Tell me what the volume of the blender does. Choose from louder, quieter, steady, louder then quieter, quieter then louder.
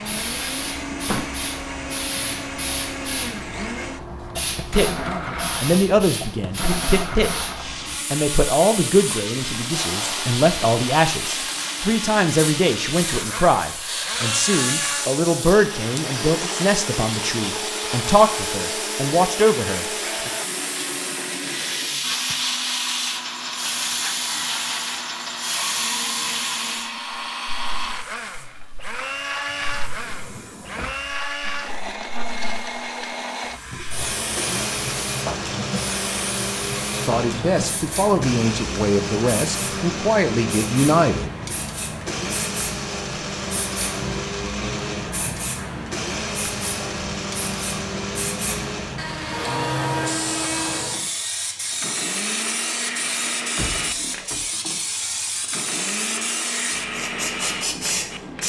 steady.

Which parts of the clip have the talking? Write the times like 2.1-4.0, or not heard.
4.6-7.5, 8.1-20.3, 37.0-41.3.